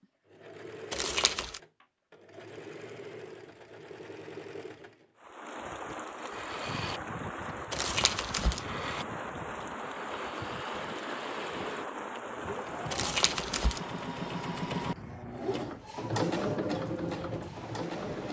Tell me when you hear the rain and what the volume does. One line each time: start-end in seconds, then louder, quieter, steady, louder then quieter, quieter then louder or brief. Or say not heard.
5.2-18.2 quieter.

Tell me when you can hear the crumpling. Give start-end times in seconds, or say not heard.
0.9-1.6, 7.7-8.7, 12.9-13.8.